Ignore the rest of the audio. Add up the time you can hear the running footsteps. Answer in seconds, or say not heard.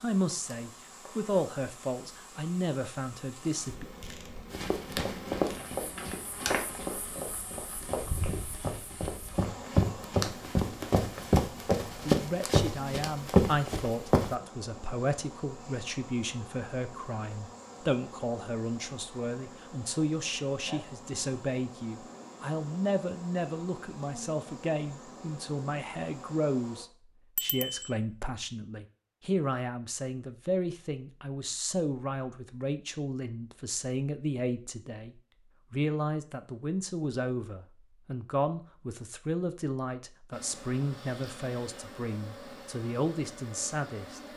10 s.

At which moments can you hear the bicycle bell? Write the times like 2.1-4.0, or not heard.
27.4-27.9.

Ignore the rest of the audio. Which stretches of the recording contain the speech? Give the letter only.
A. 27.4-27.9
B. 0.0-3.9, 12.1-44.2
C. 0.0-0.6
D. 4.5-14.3
B.